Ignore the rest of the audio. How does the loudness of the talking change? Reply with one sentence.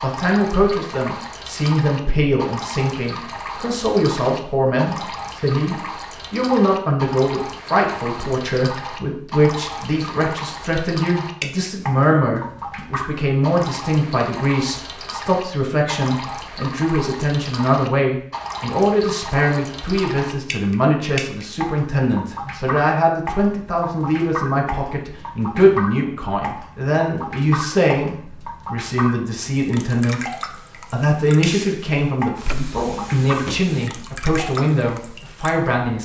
The loudness of the talking stays about the same.